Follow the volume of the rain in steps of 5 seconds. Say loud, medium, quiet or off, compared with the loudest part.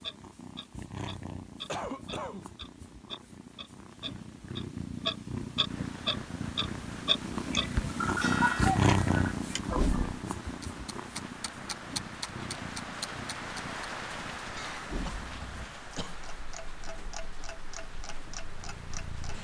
off, medium, loud, medium.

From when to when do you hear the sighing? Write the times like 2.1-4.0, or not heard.
not heard.